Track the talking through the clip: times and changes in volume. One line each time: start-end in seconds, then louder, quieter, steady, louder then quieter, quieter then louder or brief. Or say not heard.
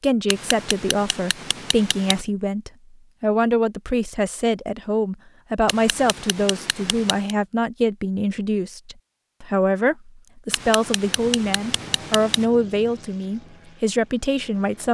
0.0-14.8 steady.